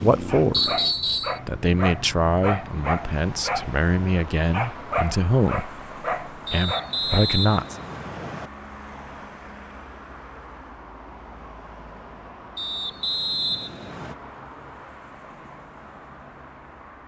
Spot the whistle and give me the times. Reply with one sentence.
The whistle can be heard from 0.5 to 1.4 s, from 6.5 to 8.5 s and from 12.6 to 14.2 s.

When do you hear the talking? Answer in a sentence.
The talking can be heard from 0.0 to 0.8 s and from 1.4 to 7.8 s.